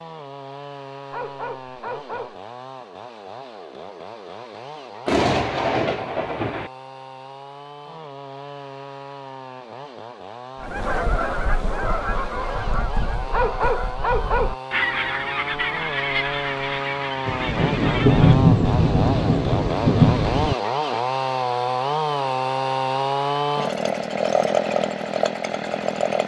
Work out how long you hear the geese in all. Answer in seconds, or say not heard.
8 s.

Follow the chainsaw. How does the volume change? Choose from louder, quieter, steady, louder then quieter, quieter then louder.
louder.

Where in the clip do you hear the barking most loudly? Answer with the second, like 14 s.
14 s.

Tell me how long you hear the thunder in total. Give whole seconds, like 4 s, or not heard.
5 s.